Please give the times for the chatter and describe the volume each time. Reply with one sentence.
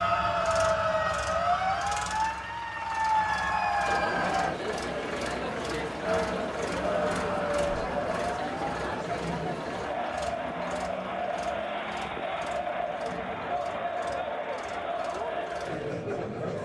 The chatter can be heard from 3.9 to 16.5 s, at a steady volume.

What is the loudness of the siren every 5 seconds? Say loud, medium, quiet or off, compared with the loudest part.
loud, medium, off, off.